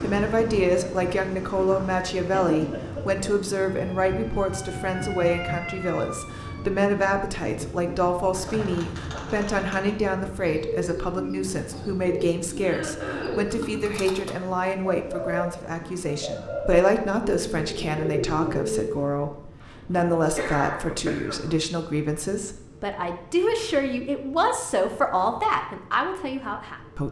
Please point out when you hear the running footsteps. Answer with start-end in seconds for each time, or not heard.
not heard.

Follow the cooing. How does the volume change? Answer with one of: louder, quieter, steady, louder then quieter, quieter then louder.
louder.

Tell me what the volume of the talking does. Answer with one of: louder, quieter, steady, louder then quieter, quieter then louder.
steady.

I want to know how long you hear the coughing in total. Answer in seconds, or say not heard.
4 s.